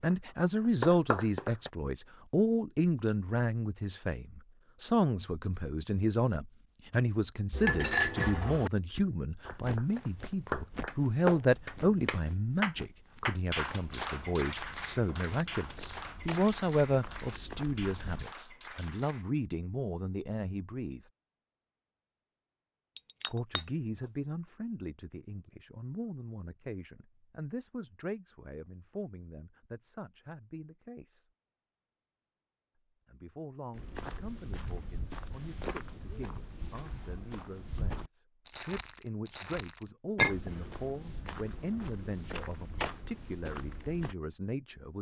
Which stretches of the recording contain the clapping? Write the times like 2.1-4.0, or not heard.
0.0-1.7, 9.4-19.2.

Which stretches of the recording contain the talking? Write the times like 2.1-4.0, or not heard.
0.0-21.0, 23.3-31.2, 33.0-44.9.